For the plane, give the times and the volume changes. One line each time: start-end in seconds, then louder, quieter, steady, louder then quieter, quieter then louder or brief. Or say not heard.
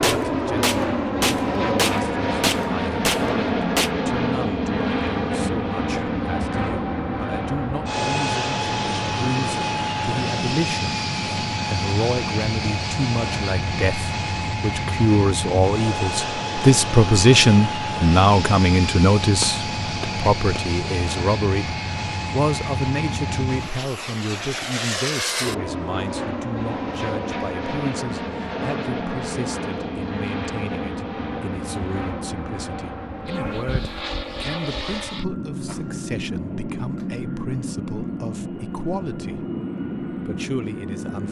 0.0-41.2 quieter.